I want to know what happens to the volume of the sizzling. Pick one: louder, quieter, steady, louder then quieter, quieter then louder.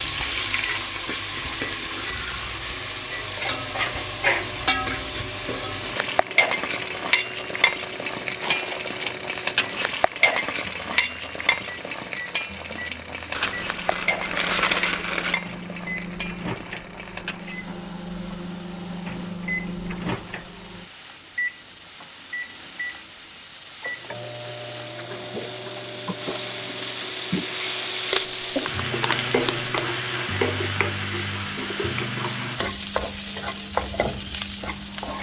quieter then louder.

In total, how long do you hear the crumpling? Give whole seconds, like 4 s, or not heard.
5 s.